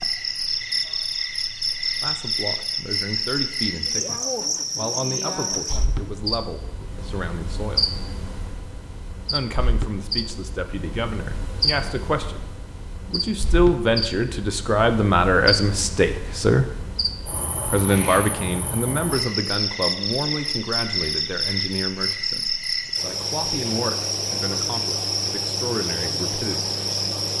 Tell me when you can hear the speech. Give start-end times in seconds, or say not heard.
2.0-7.8, 9.3-16.6, 17.6-26.7.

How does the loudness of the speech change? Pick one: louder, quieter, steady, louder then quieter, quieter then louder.
louder then quieter.